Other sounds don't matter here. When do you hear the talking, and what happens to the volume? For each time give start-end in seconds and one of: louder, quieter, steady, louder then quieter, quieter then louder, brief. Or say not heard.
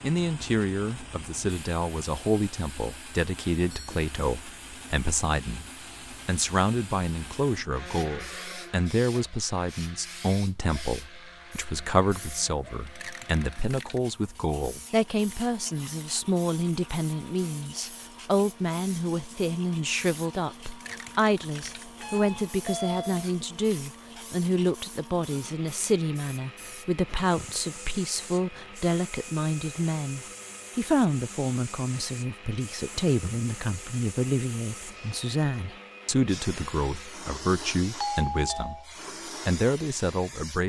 0.0-5.7 steady
6.2-38.8 steady
39.5-40.6 brief.